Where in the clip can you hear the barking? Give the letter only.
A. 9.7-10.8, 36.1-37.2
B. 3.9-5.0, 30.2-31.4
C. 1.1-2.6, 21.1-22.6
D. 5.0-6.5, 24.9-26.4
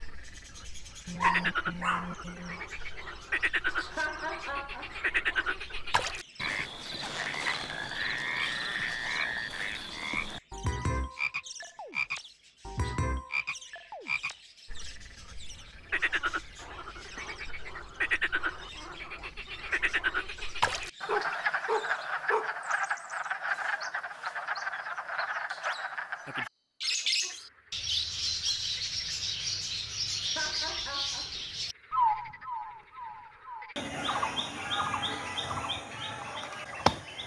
C.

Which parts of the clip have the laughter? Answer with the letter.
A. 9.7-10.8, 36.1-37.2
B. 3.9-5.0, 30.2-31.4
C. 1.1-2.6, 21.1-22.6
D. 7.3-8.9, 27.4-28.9
B.